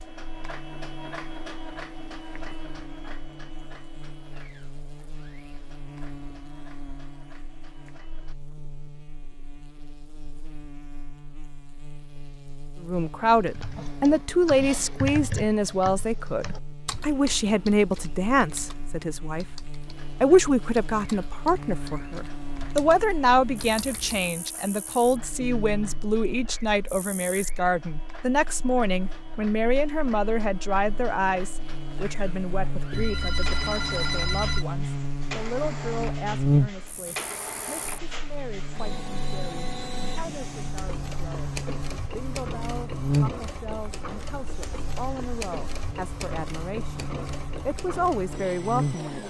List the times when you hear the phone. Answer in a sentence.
You can hear the phone from 32.9 to 34.6 s.